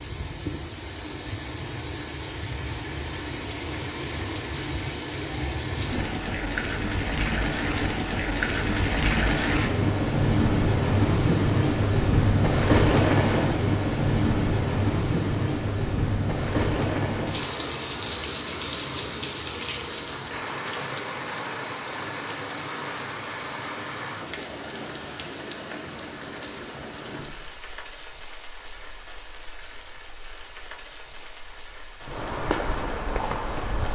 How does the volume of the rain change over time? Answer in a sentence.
The loudness of the rain goes up, then down.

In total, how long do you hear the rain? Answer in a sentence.
The rain can be heard for 34 seconds in total.